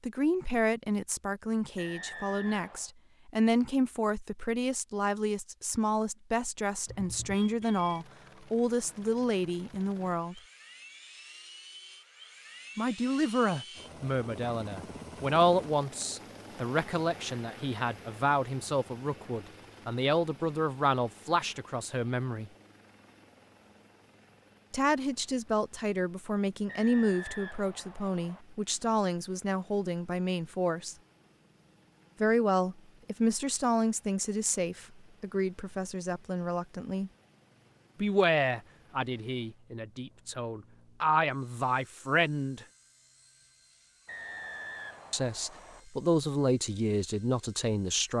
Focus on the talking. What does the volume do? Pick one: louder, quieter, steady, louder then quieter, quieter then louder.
steady.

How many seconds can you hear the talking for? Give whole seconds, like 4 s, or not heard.
39 s.